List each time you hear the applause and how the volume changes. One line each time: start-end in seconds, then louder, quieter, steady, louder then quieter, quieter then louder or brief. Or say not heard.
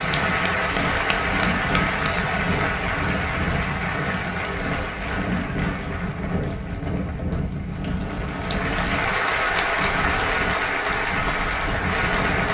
0.0-12.4 quieter then louder.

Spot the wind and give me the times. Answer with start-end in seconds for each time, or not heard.
0.0-12.4.